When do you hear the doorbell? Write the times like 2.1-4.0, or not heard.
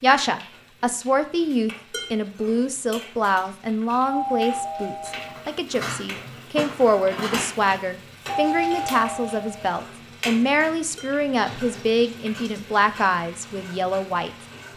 4.0-5.5, 8.2-9.7.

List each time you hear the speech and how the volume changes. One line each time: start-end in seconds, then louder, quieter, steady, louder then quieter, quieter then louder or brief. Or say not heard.
0.0-14.3 steady.